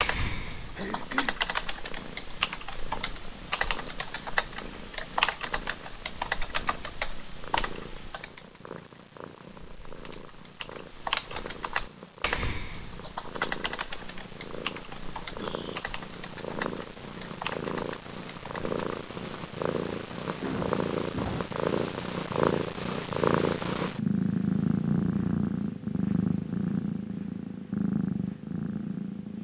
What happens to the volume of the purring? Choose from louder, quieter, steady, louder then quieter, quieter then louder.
louder.